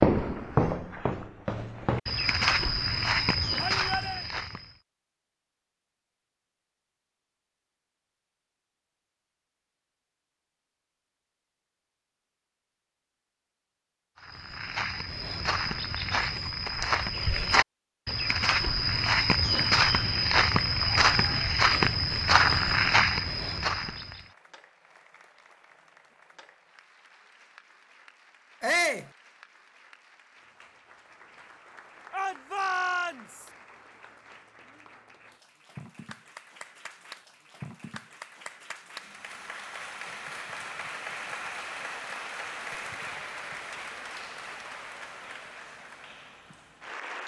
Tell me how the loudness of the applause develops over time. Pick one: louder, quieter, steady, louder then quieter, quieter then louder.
louder.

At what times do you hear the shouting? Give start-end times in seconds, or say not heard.
3.6-4.2, 28.6-29.1, 32.1-33.5.